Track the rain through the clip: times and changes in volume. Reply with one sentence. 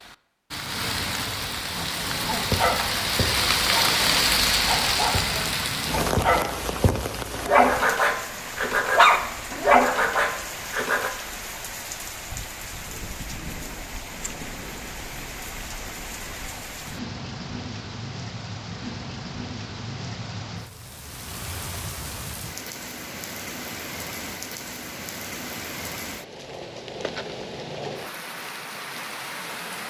You can hear the rain from 0.0 to 29.8 s, getting quieter.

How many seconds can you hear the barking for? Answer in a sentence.
You can hear the barking for 9 seconds altogether.